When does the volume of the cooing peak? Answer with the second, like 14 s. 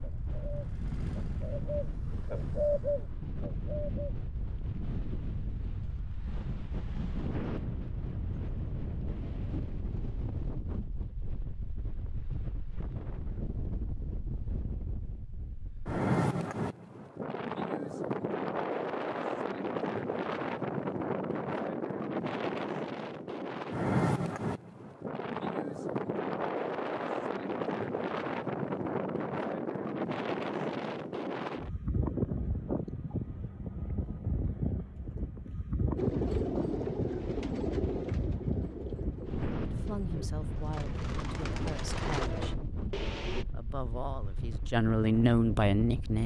3 s.